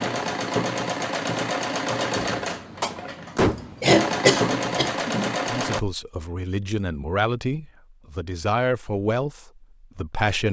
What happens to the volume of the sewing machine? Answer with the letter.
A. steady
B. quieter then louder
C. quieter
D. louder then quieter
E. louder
B.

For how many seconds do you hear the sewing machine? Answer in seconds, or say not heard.
6 s.